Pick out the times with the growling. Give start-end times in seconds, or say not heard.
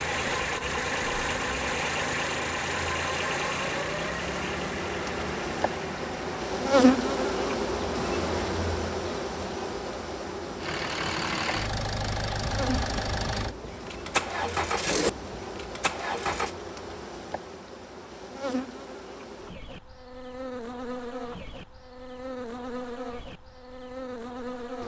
not heard.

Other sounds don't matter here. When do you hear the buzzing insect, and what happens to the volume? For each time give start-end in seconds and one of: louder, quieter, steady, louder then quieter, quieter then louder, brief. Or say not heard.
0.0-24.8 louder then quieter.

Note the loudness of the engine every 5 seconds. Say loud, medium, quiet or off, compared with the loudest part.
loud, medium, loud, loud, off.